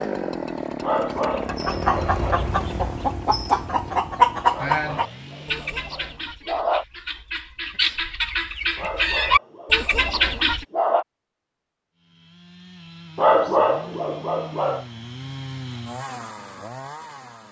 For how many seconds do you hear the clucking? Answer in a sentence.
You can hear the clucking for 9 seconds altogether.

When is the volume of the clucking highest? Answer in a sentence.
The volume of the clucking peaks at 4 seconds.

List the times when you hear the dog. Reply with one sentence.
You can hear the dog from 0.8 to 2.5 s, from 4.5 to 6.8 s, from 8.8 to 11.1 s and from 13.2 to 14.8 s.